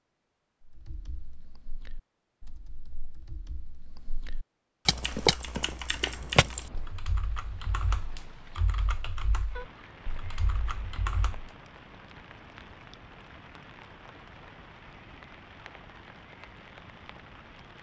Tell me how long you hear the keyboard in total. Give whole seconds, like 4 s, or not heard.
11 s.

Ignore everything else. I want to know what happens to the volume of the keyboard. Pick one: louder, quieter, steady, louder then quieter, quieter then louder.
louder then quieter.